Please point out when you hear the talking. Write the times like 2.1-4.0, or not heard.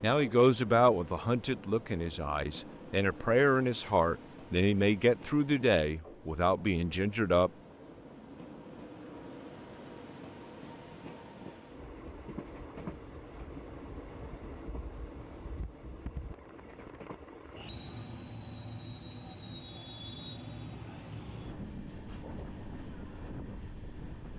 0.0-7.5.